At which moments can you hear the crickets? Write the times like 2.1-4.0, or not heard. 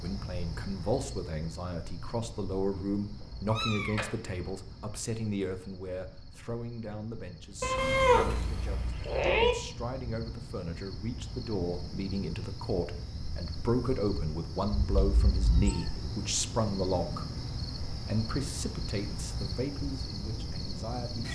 0.0-21.2.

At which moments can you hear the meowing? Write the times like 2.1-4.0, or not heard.
3.5-4.0, 7.6-9.6, 14.8-16.1.